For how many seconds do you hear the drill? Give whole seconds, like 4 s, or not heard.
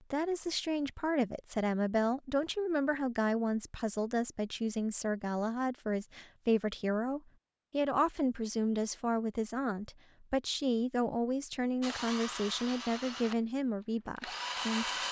3 s.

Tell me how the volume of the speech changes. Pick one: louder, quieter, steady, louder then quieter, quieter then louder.
steady.